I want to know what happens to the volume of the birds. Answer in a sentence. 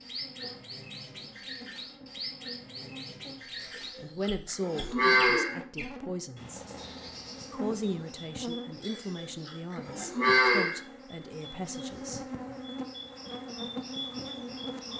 The volume of the birds goes down, then up.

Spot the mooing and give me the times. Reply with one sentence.
The mooing can be heard from 3.6 to 5.5 s and from 8.8 to 10.8 s.